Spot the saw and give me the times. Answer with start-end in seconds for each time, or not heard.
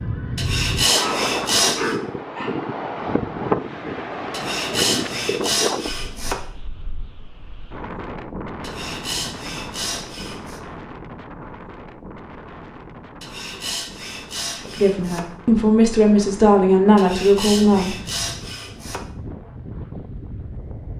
0.3-1.9, 4.3-6.3, 8.6-10.6, 13.2-15.2, 16.9-19.0.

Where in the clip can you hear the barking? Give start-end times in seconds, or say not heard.
0.9-2.5.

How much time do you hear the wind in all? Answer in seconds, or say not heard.
21 s.